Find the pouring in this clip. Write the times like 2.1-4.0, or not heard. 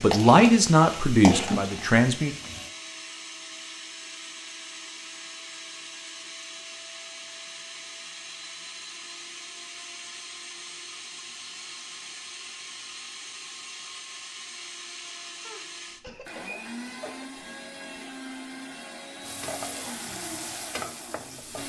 not heard.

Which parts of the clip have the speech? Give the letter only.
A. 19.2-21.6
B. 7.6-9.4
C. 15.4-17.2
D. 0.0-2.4
D.